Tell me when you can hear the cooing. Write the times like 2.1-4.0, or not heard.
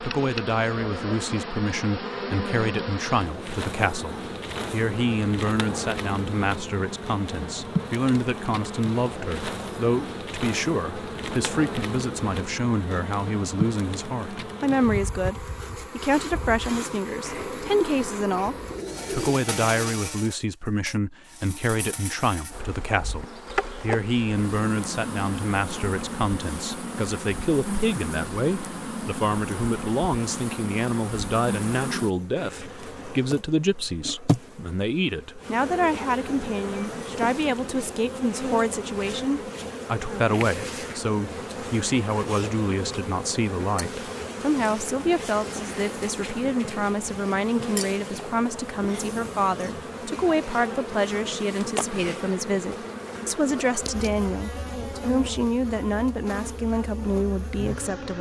17.2-19.4.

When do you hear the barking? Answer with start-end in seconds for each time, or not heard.
not heard.